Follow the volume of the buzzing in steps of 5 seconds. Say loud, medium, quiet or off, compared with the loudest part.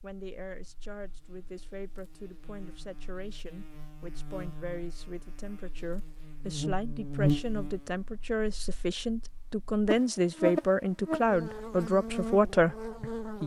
quiet, loud, loud.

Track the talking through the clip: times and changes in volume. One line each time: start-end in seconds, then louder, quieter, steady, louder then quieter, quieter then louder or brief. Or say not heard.
0.0-13.4 louder.